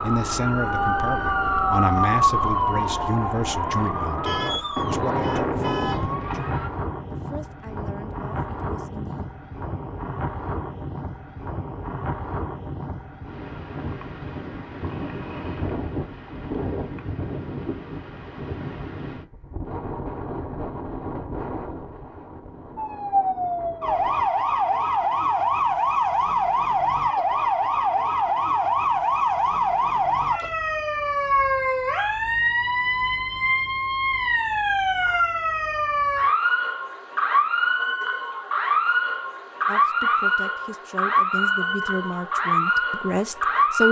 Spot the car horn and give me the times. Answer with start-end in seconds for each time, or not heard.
4.2-6.0.